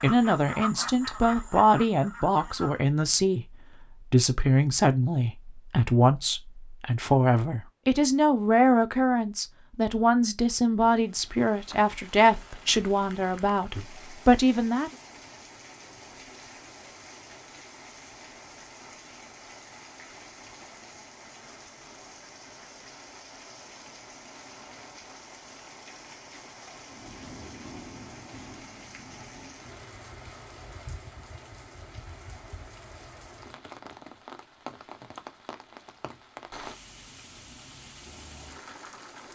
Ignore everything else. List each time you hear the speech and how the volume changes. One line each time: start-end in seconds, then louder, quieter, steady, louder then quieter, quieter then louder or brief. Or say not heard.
0.0-14.9 steady.